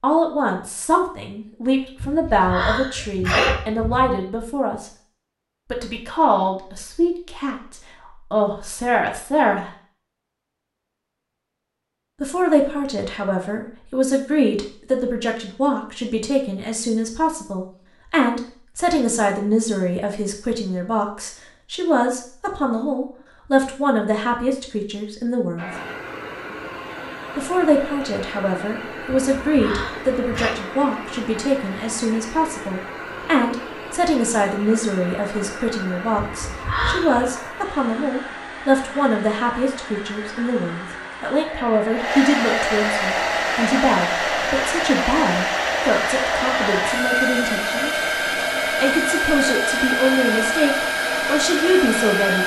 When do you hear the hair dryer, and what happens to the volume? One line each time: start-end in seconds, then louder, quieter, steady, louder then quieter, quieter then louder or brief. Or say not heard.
25.6-52.4 louder.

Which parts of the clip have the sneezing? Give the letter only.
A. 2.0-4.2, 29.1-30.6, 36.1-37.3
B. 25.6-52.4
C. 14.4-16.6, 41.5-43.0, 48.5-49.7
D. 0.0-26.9
A.